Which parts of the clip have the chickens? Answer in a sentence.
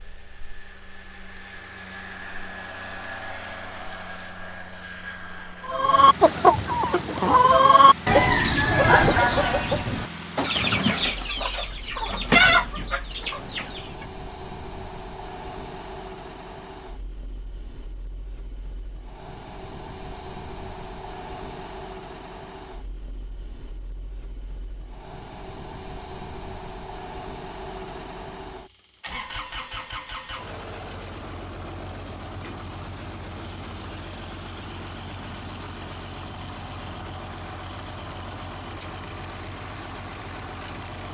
You can hear the chickens from 5.7 to 14.1 s.